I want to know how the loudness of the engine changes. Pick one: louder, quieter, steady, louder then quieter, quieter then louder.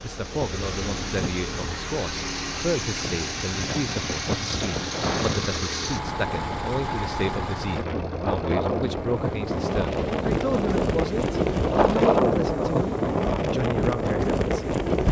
quieter.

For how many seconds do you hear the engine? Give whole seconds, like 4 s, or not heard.
12 s.